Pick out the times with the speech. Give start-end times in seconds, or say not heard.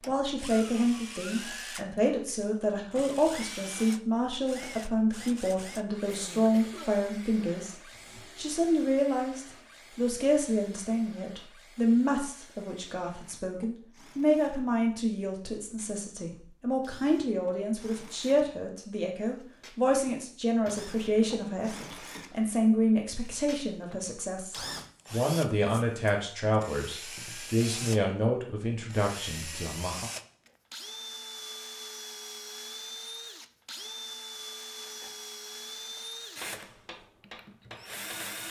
0.1-30.1.